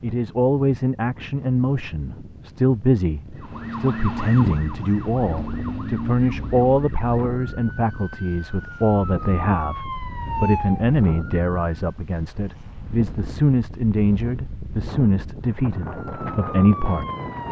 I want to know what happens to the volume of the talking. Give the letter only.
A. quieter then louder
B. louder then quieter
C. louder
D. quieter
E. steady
E.